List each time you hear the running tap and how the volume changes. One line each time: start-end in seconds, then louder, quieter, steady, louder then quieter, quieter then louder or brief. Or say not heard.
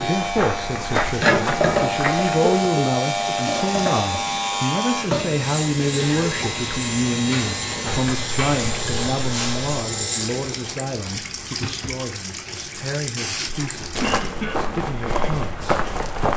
0.0-14.2 quieter.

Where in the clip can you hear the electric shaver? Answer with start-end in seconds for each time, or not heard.
0.0-10.8.